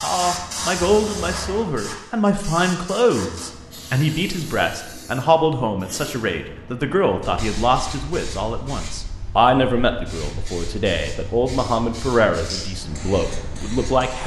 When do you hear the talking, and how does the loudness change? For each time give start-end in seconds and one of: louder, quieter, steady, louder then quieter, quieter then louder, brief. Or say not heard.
0.0-14.2 steady.